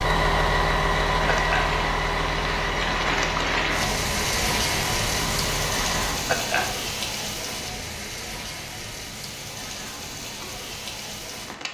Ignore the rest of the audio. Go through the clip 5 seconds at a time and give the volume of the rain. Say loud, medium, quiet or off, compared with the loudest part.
loud, loud, medium.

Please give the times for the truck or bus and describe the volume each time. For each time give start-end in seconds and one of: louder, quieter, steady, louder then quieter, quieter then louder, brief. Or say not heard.
0.0-6.2 quieter.